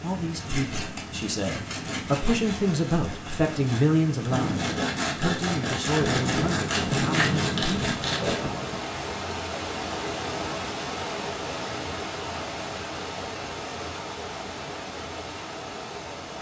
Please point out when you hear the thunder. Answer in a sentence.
The thunder can be heard from 4.3 to 8.8 s.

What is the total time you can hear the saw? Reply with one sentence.
The saw can be heard for 8 seconds in total.